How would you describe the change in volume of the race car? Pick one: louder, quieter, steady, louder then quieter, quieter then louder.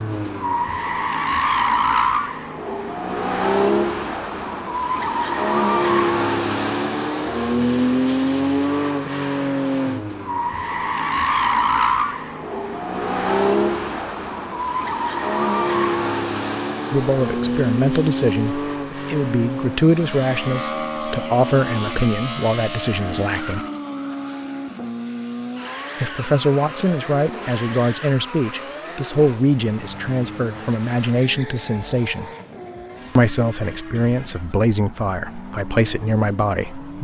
quieter.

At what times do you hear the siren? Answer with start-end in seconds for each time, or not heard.
not heard.